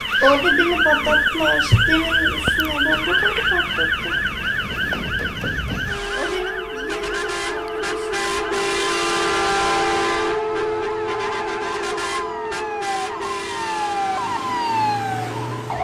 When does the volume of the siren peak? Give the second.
1 s.